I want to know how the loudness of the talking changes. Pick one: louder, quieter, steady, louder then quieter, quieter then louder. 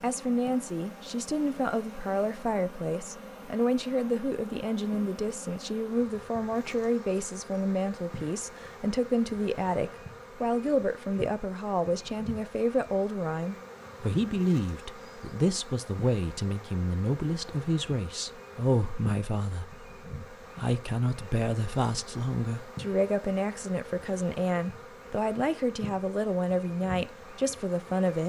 steady.